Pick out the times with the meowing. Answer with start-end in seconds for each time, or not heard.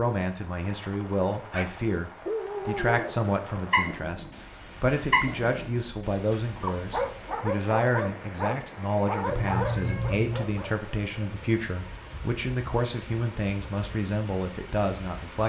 9.3-10.4.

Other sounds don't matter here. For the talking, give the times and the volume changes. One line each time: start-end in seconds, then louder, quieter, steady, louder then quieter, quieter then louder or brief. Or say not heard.
0.0-15.4 steady.